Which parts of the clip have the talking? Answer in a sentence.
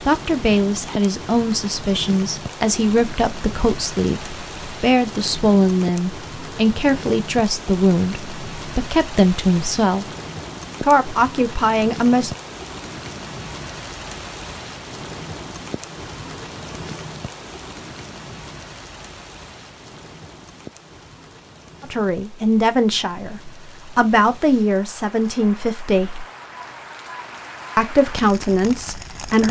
The talking can be heard from 0.1 to 10.1 s, from 10.8 to 12.3 s, from 21.8 to 26.2 s and from 27.8 to 29.4 s.